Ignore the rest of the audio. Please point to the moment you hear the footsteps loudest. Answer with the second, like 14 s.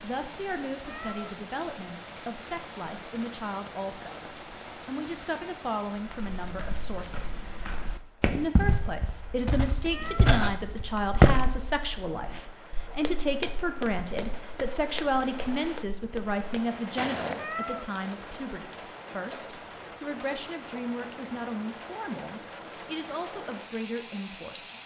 11 s.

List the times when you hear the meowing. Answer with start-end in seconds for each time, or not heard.
0.8-1.4, 9.9-10.4, 17.4-17.9.